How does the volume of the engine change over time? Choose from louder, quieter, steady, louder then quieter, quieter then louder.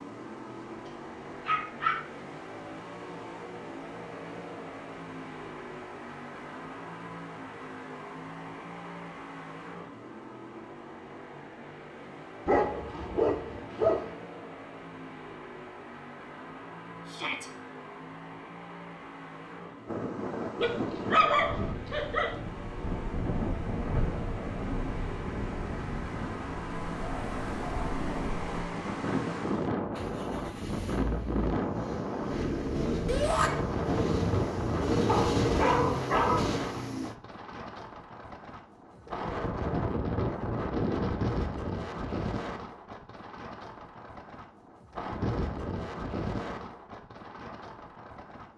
louder.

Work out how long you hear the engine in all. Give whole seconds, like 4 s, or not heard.
37 s.